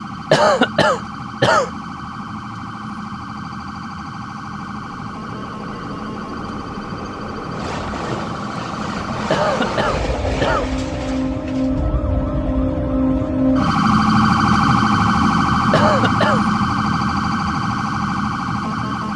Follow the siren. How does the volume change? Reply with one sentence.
The volume of the siren goes up.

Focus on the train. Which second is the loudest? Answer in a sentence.
The volume of the train peaks at 10 seconds.